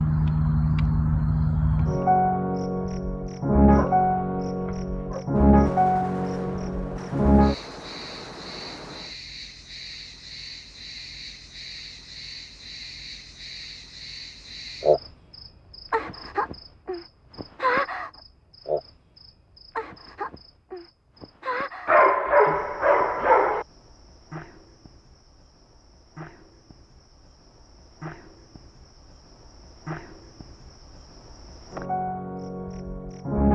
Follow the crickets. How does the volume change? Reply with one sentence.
The volume of the crickets goes down.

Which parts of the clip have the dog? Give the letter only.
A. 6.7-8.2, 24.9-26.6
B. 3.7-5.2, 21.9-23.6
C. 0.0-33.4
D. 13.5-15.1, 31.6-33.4
B.